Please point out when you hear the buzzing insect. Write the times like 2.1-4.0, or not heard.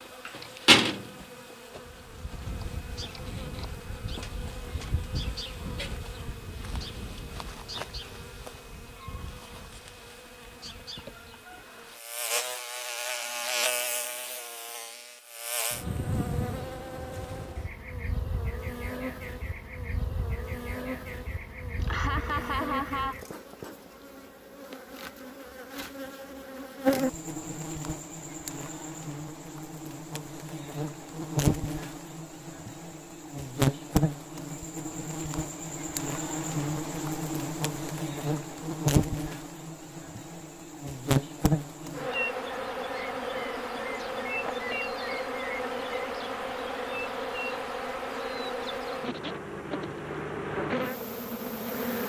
0.0-52.0.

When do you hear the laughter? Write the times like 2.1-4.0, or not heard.
21.8-23.2.